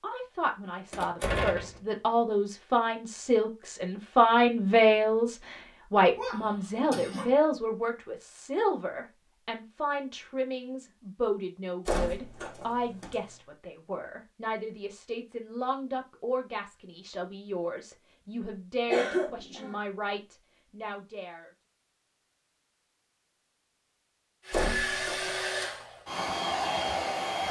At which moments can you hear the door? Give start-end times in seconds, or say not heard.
0.9-1.8, 11.8-13.2, 24.5-25.4.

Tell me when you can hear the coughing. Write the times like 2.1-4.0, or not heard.
6.2-7.3, 18.9-19.8.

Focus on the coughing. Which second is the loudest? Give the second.
19 s.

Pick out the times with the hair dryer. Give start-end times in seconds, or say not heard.
24.4-27.4.